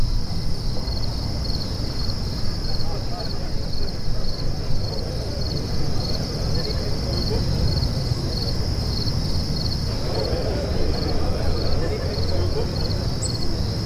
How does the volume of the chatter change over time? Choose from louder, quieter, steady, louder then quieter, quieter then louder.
louder.